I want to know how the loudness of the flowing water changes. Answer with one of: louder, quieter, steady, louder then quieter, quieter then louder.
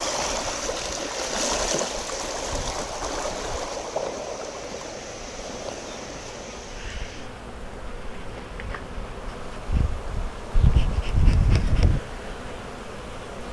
quieter.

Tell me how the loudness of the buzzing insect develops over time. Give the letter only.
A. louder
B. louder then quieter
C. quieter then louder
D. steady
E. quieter
A.